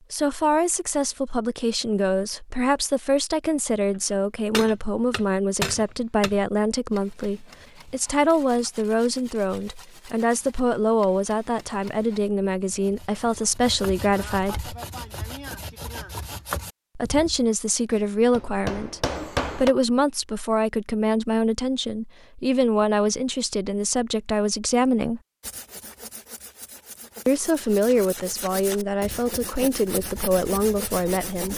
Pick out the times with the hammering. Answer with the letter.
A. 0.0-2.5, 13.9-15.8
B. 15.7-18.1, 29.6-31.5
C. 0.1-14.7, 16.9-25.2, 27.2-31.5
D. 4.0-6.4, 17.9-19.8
D.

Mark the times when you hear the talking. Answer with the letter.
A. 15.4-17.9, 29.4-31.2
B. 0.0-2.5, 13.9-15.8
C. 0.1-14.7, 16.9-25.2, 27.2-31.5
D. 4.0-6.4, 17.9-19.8
C.